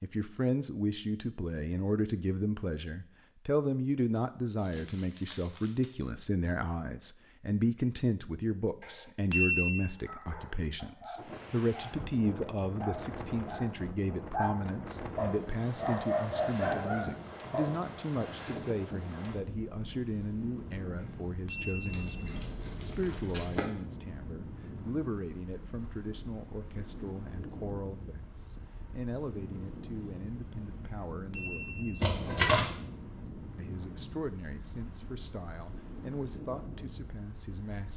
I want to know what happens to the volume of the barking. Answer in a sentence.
The volume of the barking goes up.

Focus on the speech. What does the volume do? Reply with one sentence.
The loudness of the speech goes down.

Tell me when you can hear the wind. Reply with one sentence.
The wind can be heard from 11.2 to 37.9 s.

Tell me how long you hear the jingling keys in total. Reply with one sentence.
The jingling keys can be heard for 4 seconds in total.